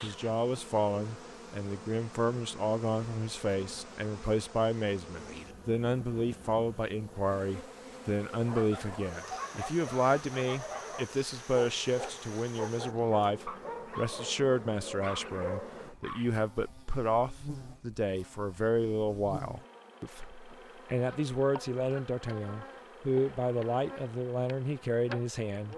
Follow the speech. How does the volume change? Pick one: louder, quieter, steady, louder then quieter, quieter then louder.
steady.